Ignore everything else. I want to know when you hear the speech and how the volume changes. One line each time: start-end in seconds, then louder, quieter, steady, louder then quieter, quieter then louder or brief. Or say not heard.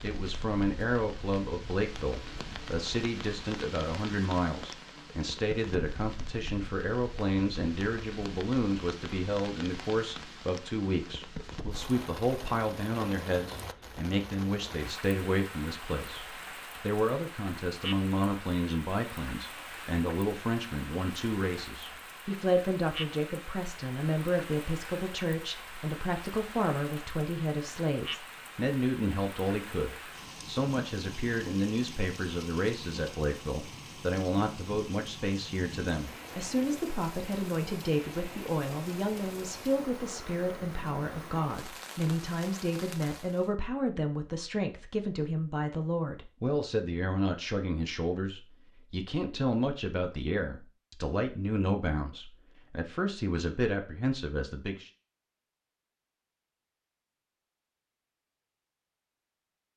0.0-54.9 steady.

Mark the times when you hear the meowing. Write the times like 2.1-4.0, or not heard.
not heard.